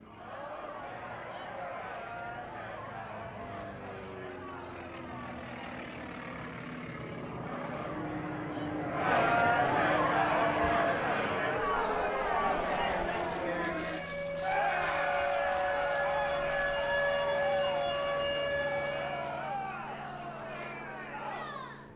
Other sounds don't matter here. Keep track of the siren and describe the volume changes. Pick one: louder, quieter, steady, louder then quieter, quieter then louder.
louder.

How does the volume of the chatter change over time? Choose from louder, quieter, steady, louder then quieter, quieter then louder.
louder then quieter.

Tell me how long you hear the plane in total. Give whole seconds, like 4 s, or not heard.
22 s.